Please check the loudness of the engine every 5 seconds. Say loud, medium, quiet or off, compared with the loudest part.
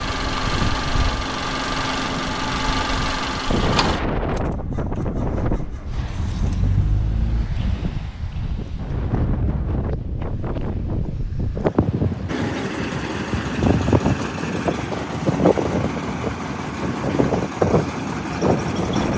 loud, medium, loud, loud.